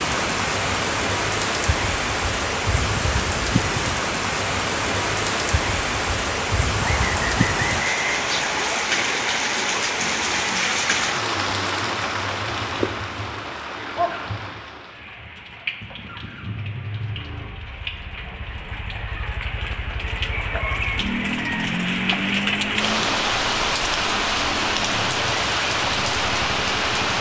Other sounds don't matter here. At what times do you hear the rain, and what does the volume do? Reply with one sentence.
You can hear the rain from 0.0 to 27.1 s, getting quieter then louder.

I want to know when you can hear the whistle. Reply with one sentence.
You can hear the whistle from 6.8 to 8.8 s.